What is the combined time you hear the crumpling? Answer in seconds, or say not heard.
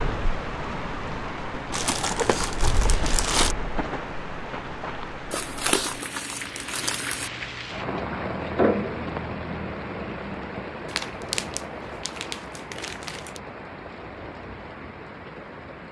6 s.